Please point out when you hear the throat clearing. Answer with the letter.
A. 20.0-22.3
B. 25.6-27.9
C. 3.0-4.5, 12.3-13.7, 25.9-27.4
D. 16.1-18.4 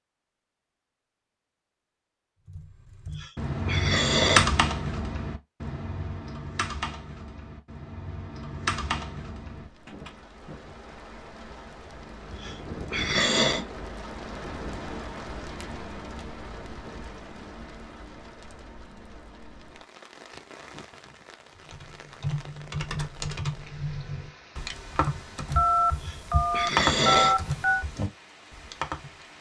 C.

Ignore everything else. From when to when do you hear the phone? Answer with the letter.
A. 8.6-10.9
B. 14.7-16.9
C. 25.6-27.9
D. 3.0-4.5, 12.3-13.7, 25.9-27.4
C.